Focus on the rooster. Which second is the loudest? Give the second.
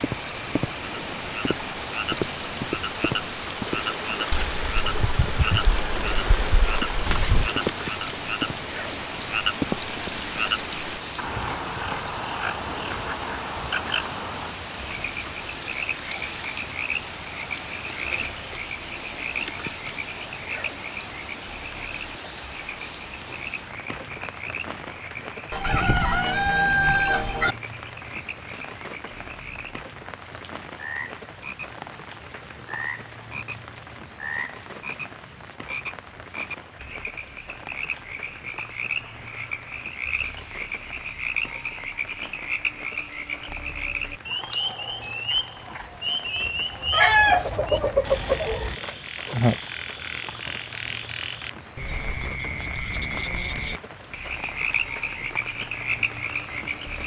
47 s.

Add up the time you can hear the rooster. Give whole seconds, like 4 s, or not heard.
7 s.